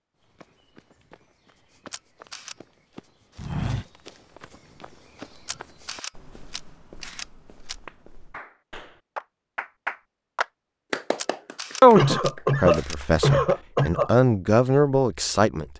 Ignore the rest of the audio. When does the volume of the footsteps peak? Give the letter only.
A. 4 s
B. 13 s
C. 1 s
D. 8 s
A.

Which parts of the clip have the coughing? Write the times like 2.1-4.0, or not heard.
11.9-14.1.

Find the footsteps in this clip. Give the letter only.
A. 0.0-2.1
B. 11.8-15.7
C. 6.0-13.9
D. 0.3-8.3
D.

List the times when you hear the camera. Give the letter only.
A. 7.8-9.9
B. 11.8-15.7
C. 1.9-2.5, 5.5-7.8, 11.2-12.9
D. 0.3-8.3
C.